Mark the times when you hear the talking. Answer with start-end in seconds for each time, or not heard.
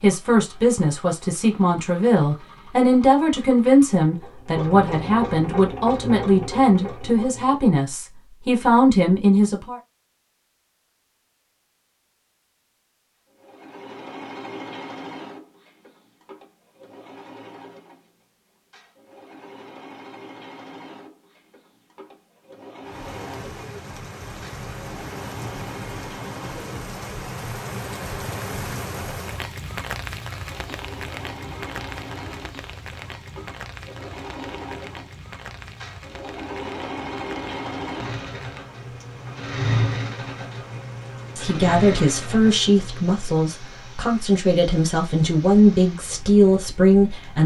0.0-9.8, 41.4-47.4.